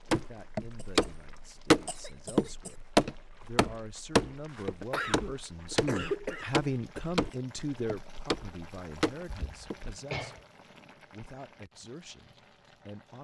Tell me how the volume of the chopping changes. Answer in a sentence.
The volume of the chopping goes down.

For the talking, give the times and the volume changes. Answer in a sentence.
The talking can be heard from 0.1 to 13.1 s, getting louder then quieter.